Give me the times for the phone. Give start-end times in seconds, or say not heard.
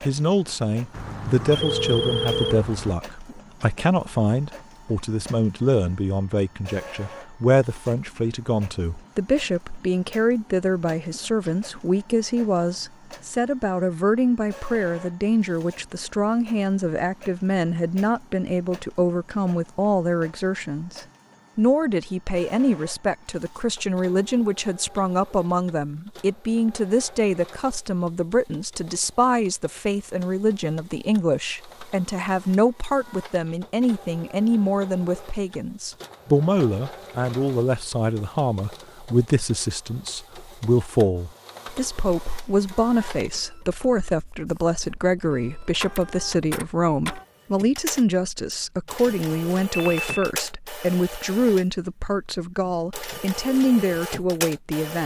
0.9-3.0, 49.7-50.3.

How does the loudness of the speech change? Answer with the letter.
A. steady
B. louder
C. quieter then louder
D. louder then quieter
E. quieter
A.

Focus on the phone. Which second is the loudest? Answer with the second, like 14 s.
2 s.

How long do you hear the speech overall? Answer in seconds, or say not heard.
55 s.